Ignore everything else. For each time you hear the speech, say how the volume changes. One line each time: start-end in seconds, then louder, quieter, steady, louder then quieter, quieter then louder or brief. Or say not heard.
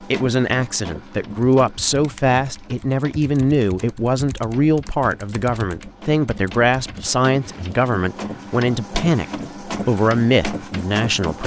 0.1-11.4 steady.